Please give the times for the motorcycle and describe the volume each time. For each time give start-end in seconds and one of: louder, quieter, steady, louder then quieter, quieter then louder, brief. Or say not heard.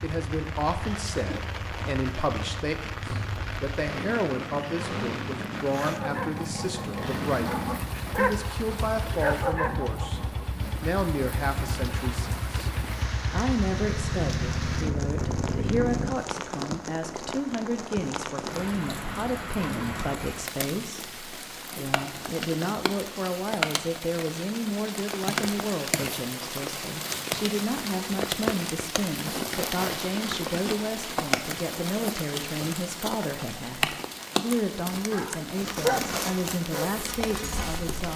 0.0-16.1 louder.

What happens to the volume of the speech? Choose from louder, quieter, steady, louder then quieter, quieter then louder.
steady.